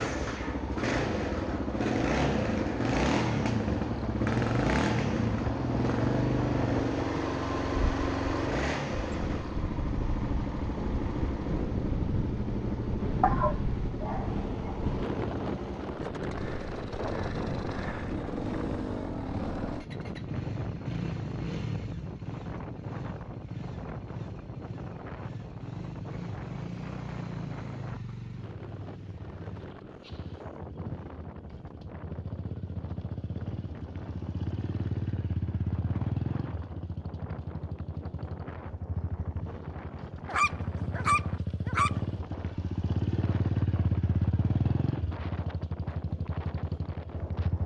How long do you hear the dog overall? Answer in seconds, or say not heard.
3 s.